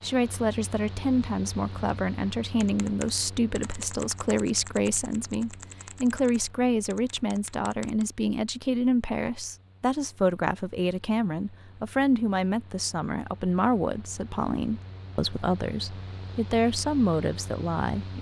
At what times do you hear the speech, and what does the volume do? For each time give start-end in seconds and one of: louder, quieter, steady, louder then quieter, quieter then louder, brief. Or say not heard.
0.0-18.1 steady.